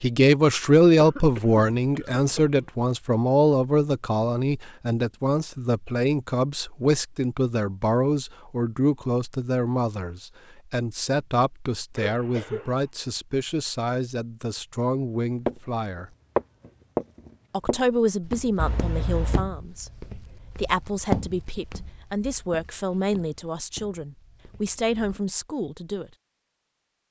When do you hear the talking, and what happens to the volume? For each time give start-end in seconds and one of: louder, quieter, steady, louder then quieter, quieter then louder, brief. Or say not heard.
0.0-16.1 quieter
17.5-19.9 brief
20.6-26.1 steady.